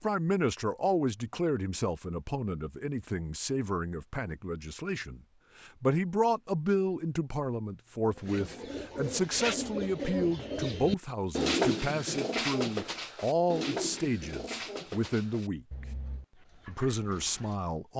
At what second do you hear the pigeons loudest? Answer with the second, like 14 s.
12 s.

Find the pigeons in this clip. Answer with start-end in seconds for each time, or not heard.
8.2-17.6.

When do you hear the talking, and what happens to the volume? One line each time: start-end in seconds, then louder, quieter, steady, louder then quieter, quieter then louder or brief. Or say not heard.
0.0-15.8 steady
16.6-17.9 brief.